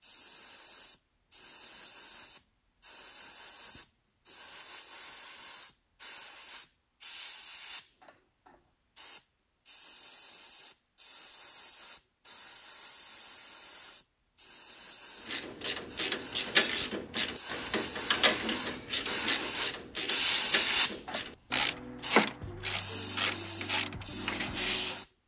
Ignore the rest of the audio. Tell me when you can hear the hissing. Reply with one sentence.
The hissing can be heard from 0.0 to 25.1 s.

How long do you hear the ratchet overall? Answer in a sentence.
You can hear the ratchet for 10 seconds altogether.